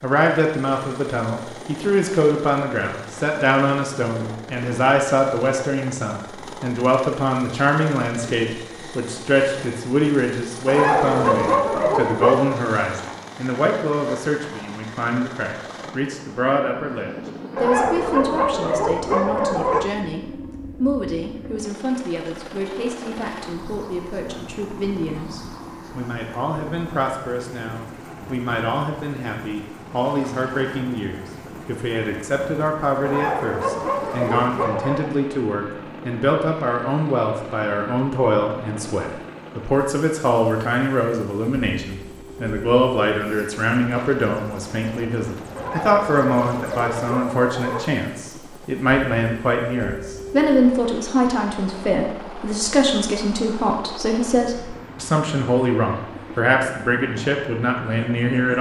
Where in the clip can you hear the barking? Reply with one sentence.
You can hear the barking from 10.7 to 12.6 s, from 17.6 to 19.9 s, from 33.0 to 35.1 s and from 45.5 to 48.0 s.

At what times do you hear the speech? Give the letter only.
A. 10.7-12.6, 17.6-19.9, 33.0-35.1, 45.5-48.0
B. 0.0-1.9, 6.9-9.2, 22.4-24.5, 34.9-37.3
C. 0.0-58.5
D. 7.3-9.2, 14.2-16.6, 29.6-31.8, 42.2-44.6
C.